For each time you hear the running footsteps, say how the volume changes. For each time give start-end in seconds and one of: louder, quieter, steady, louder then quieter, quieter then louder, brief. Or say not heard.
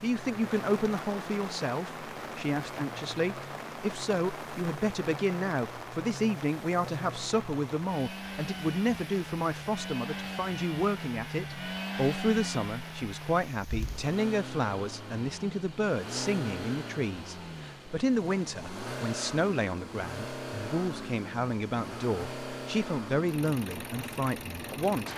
not heard.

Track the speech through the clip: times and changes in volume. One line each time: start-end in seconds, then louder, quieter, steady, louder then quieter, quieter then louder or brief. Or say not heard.
0.0-25.1 steady.